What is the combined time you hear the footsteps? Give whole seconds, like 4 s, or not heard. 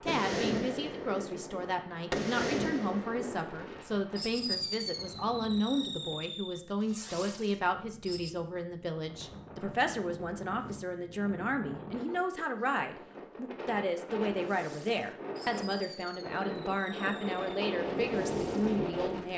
not heard.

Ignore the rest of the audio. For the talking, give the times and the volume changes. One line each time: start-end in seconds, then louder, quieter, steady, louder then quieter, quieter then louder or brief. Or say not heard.
0.0-19.3 steady.